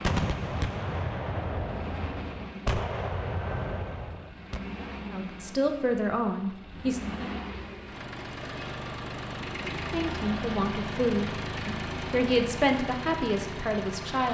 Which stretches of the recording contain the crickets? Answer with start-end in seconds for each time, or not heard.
not heard.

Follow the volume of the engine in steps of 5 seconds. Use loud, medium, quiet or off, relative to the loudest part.
medium, loud, loud.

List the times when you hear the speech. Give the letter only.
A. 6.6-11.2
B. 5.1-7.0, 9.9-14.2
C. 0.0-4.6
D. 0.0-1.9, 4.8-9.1
B.